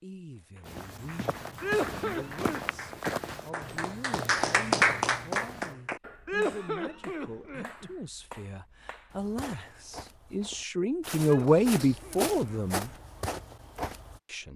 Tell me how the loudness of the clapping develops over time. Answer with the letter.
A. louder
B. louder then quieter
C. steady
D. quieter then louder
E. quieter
B.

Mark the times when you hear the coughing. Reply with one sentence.
The coughing can be heard from 1.6 to 2.6 s, from 6.2 to 7.9 s and from 11.2 to 12.6 s.